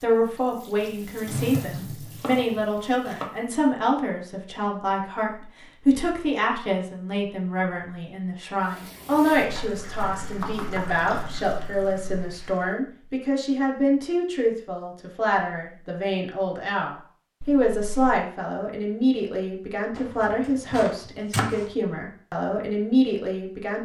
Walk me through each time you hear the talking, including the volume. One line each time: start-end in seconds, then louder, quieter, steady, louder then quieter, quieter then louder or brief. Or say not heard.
0.0-23.8 steady.